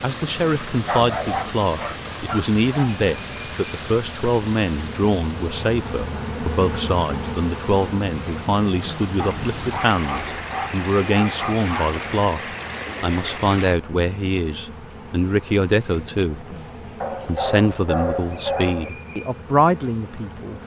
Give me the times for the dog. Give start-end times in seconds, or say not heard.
0.8-3.0, 9.2-12.0, 17.0-18.9.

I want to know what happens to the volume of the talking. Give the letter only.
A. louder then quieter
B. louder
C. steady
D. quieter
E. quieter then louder
C.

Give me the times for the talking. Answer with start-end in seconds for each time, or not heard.
0.0-12.4, 13.0-16.6, 17.2-20.6.